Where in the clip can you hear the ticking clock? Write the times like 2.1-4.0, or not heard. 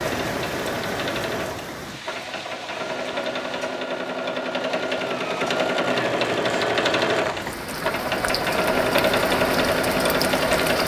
not heard.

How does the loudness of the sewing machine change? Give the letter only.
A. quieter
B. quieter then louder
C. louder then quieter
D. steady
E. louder
E.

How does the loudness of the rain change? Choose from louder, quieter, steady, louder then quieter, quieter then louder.
quieter then louder.